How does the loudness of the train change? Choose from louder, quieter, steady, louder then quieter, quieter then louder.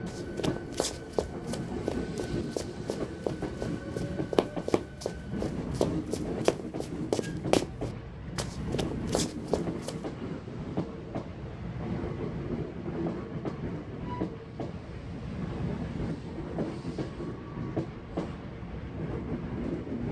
steady.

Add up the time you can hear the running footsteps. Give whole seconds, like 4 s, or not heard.
9 s.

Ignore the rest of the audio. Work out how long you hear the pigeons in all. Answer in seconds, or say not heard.
not heard.